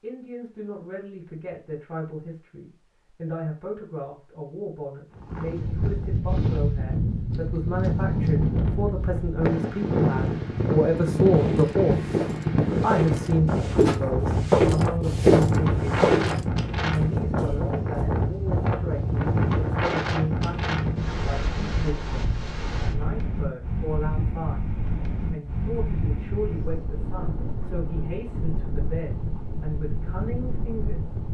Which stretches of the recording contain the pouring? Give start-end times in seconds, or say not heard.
not heard.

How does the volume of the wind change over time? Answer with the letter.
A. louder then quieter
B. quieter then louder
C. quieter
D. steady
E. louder
C.